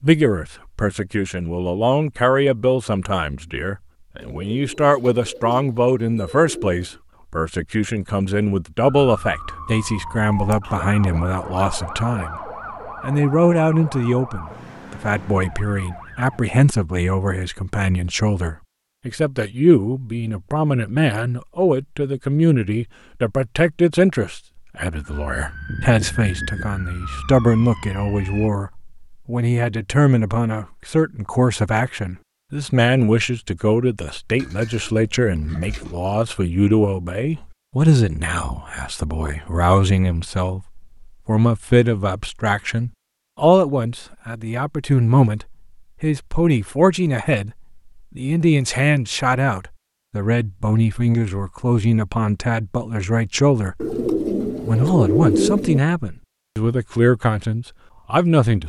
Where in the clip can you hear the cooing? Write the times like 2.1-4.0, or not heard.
4.2-7.0, 34.4-36.0, 53.8-55.8.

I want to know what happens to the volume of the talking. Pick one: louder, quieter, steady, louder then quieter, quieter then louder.
steady.